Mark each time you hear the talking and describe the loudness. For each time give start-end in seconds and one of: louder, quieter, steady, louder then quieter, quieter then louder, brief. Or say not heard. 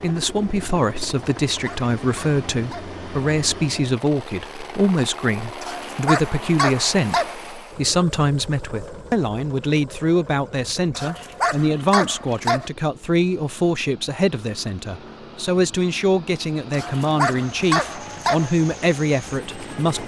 0.0-20.0 steady.